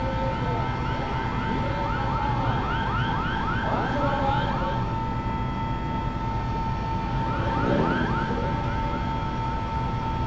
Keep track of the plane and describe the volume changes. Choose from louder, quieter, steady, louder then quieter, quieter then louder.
steady.